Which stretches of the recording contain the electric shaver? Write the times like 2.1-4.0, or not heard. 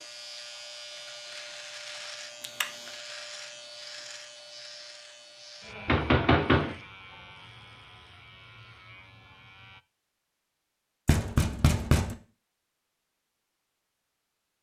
0.0-9.8.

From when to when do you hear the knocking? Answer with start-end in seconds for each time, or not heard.
2.4-2.9, 5.8-6.8, 11.1-12.2.